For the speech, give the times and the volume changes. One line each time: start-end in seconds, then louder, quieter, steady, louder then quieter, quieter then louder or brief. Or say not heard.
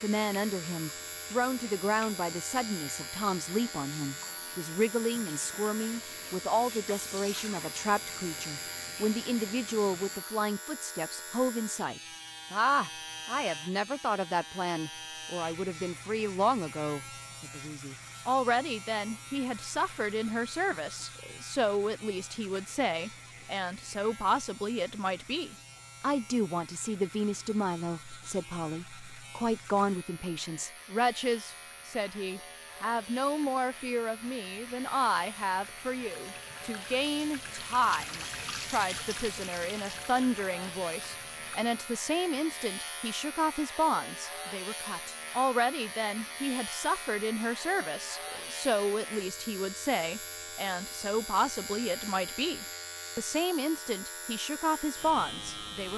0.0-55.9 steady.